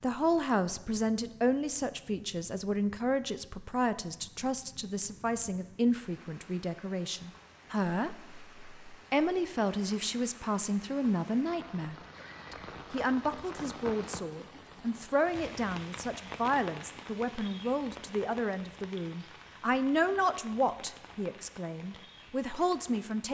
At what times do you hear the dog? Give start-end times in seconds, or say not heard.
not heard.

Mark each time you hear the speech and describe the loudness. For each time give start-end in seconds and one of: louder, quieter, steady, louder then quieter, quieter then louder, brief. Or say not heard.
0.0-23.2 steady.